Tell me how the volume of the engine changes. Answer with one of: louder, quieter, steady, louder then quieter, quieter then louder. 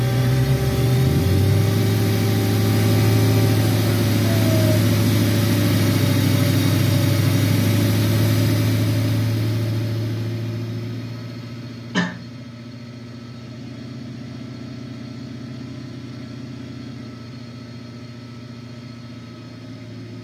quieter.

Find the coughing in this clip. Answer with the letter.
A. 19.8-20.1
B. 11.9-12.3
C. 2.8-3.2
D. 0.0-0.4
B.